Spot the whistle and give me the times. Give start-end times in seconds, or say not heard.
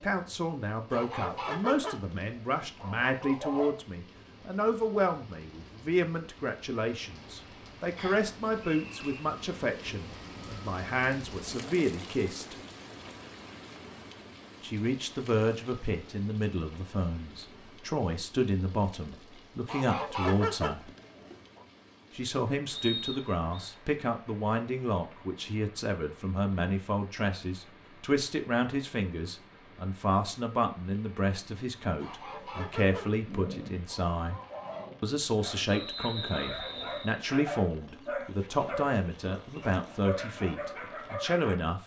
8.0-9.2, 22.7-23.7, 35.6-37.2.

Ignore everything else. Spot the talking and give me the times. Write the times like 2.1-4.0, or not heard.
0.0-12.6, 14.6-20.9, 22.1-34.4, 35.0-41.8.